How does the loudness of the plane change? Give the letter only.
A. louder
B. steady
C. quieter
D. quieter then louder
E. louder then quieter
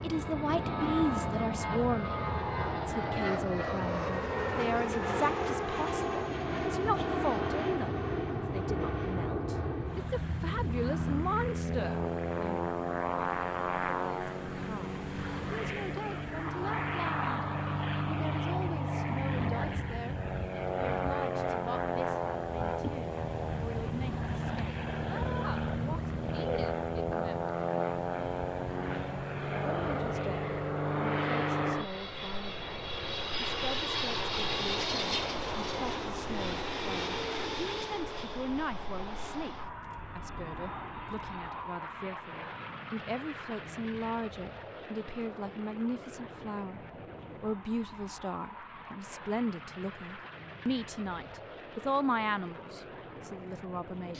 C.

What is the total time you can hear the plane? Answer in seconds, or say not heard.
54 s.